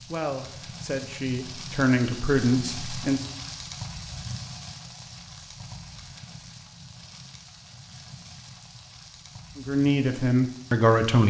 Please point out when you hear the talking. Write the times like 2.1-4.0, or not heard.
0.1-3.2, 9.6-11.2.